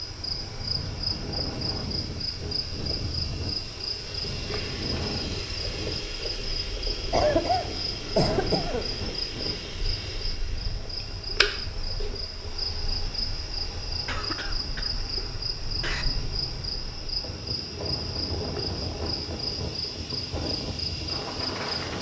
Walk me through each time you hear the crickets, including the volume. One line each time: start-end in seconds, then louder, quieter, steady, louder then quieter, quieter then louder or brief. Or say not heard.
0.0-21.9 steady.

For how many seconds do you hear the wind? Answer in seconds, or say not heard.
22 s.